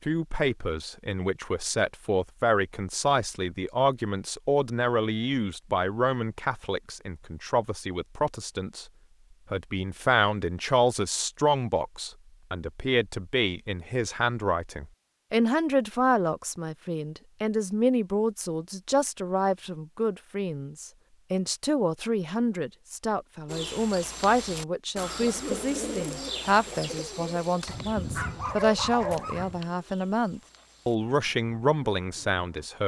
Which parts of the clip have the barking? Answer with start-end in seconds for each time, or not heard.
27.6-29.6.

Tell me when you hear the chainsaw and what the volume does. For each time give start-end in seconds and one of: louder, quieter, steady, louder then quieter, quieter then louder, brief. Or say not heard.
not heard.